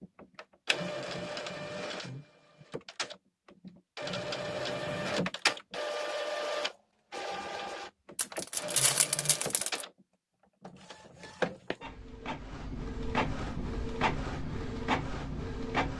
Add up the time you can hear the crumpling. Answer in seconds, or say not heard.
2 s.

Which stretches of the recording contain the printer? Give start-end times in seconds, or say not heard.
0.0-15.9.